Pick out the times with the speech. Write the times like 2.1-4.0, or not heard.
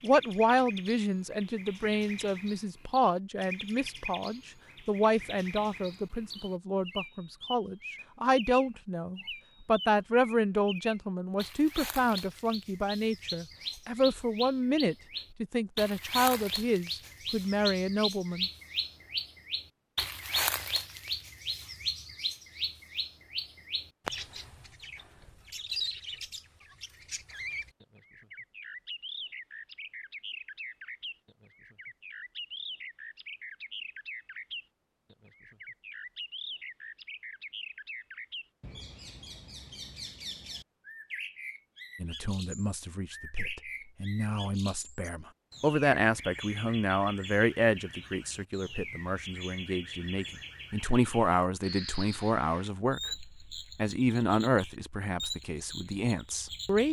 0.0-18.5, 42.0-56.8.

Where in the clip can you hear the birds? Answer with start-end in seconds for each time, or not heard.
0.0-56.8.